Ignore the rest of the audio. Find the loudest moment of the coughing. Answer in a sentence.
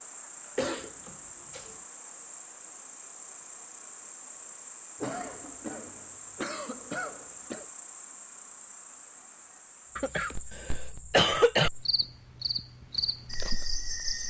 The loudest moment of the coughing is at 11 seconds.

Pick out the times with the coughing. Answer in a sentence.
The coughing can be heard from 0.6 to 1.8 s, from 5.0 to 7.7 s and from 9.9 to 11.7 s.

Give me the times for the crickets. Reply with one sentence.
You can hear the crickets from 0.0 to 14.2 s.